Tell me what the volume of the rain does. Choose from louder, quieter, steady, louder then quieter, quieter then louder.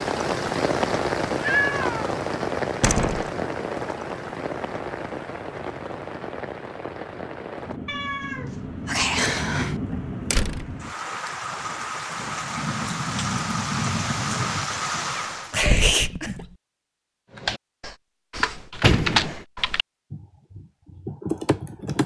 quieter then louder.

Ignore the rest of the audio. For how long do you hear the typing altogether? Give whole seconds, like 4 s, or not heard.
5 s.